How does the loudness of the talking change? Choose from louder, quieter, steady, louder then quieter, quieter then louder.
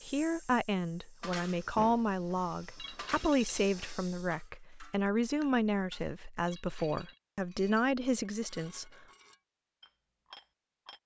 steady.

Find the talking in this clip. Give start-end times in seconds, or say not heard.
0.0-8.9.